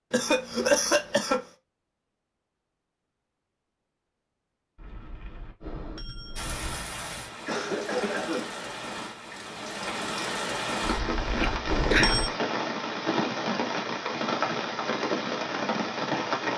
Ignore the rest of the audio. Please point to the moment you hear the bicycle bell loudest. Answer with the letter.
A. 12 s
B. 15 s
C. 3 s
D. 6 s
A.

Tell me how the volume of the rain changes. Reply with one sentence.
The loudness of the rain goes up.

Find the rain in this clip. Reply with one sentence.
The rain can be heard from 6.3 to 16.5 s.